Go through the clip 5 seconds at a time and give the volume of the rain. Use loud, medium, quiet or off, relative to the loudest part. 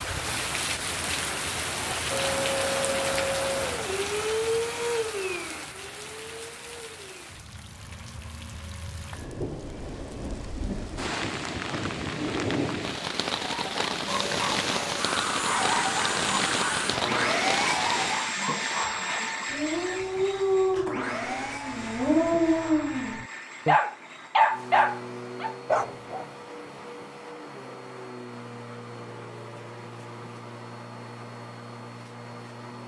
loud, medium, loud, loud, off, off, off.